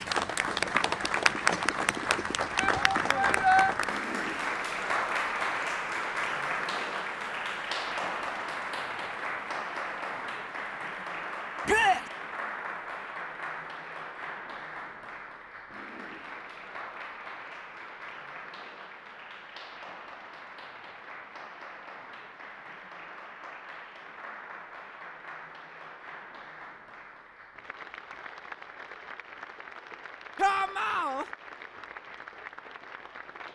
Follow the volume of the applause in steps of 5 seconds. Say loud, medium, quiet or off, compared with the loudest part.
loud, loud, medium, quiet, quiet, quiet, quiet.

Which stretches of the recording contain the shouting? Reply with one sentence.
The shouting can be heard from 2.5 to 3.8 s, from 11.7 to 12.1 s and from 30.4 to 31.2 s.